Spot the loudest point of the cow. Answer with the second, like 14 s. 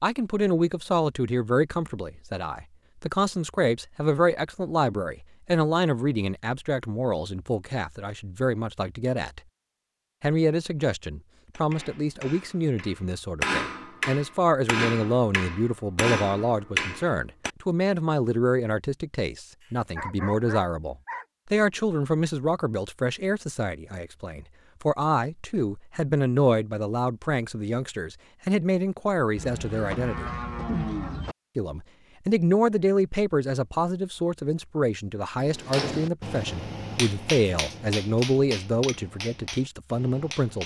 31 s.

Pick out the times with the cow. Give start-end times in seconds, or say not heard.
29.4-31.4.